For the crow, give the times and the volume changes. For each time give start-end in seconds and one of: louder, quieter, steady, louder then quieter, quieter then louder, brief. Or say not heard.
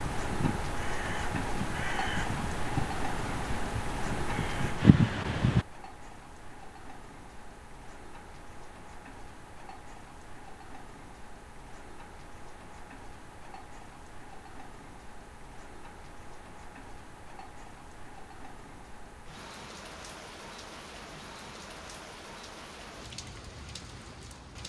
0.0-5.7 louder.